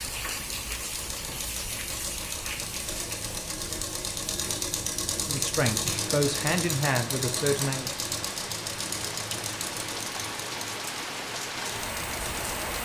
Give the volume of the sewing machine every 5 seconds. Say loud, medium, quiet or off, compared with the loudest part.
loud, loud, medium.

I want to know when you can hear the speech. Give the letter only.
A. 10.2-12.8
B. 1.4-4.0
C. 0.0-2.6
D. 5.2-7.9
D.